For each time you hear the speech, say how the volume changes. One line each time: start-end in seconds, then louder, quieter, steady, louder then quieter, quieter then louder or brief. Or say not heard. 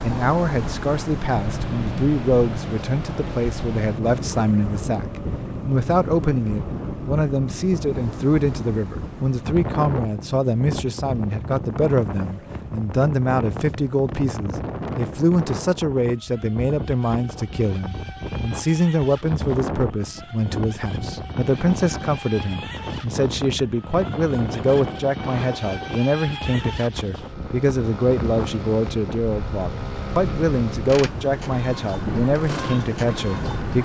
0.0-33.8 steady.